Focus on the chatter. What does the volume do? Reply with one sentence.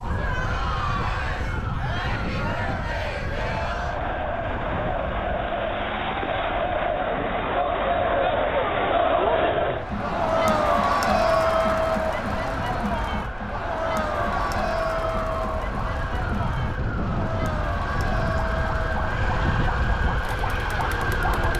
The loudness of the chatter goes up, then down.